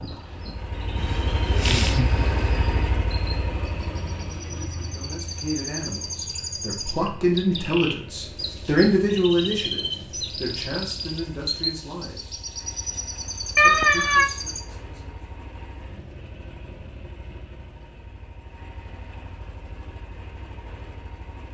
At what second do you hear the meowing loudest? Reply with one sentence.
The loudest moment of the meowing is at 14 seconds.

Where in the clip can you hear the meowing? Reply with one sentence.
The meowing can be heard from 0.9 to 2.6 s and from 13.6 to 14.3 s.